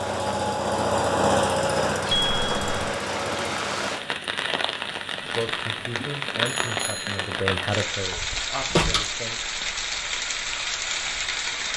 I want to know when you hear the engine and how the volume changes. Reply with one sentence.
You can hear the engine from 0.0 to 4.2 s, getting quieter.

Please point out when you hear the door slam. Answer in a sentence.
You can hear the door slam from 8.1 to 9.1 s.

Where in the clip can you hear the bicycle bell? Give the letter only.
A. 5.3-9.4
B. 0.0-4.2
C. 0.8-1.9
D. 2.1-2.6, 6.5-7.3
D.